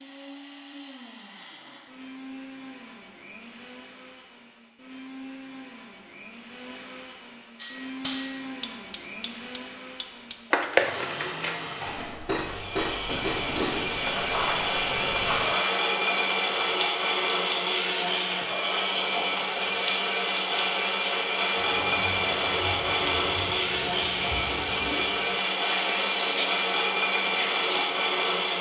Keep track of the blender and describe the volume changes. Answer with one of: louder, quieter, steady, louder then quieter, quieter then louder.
louder.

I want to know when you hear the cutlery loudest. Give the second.
11 s.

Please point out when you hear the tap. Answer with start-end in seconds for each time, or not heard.
11.8-28.4.